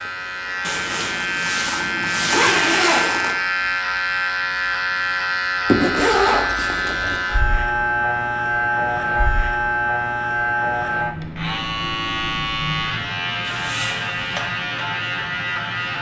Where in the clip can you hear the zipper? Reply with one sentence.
You can hear the zipper from 0.7 to 3.4 s, from 5.7 to 7.2 s and from 13.4 to 14.4 s.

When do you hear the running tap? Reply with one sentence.
You can't hear the running tap here.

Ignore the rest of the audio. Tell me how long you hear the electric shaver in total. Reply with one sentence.
The electric shaver can be heard for 16 seconds in total.